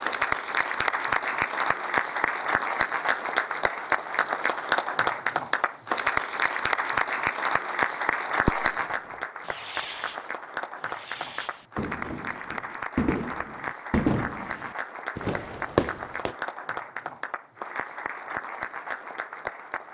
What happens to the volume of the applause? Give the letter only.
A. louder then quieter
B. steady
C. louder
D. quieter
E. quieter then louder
D.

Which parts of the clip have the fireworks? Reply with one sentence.
You can hear the fireworks from 8.4 to 16.4 s.